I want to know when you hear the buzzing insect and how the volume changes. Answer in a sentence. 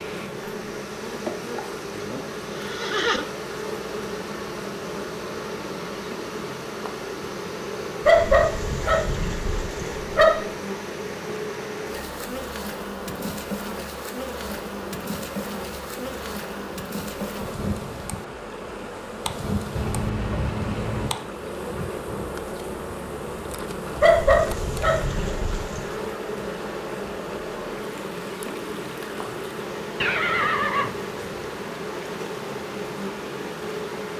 You can hear the buzzing insect from 0.0 to 34.1 s, at a steady volume.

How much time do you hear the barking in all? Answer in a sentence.
You can hear the barking for 4 seconds altogether.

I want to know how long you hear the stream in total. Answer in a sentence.
You can hear the stream for 34 seconds altogether.